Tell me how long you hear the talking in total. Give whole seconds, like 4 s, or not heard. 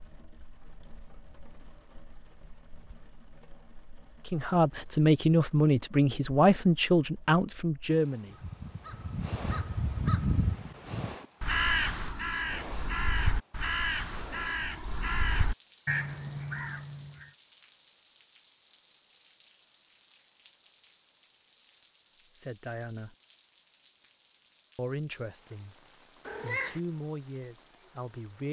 8 s.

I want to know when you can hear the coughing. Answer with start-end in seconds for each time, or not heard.
not heard.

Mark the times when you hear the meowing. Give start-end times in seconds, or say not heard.
26.2-26.8.